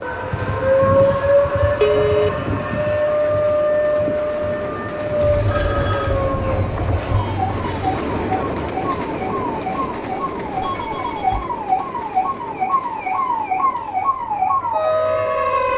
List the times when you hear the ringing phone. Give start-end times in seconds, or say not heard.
0.3-2.3, 5.5-6.2, 10.7-11.6.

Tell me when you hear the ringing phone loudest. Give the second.
2 s.